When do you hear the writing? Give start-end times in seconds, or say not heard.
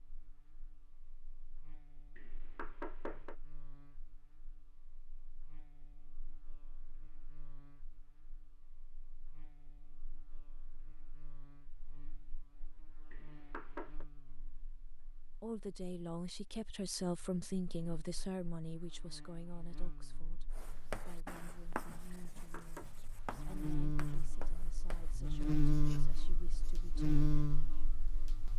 20.5-26.9.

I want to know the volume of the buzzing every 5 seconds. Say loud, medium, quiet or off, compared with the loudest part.
quiet, quiet, quiet, quiet, medium, loud.